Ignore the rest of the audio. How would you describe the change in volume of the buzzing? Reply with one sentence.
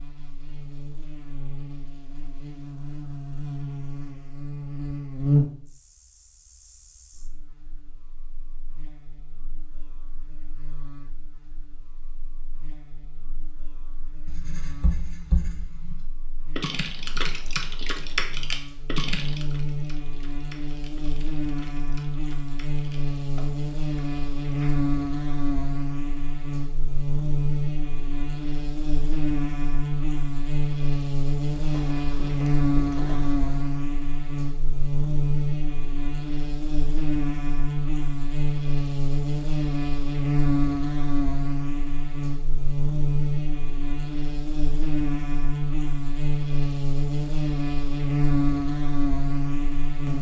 The volume of the buzzing goes down, then up.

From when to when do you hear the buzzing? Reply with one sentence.
You can hear the buzzing from 0.0 to 50.1 s.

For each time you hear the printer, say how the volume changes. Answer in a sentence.
You can't hear the printer here.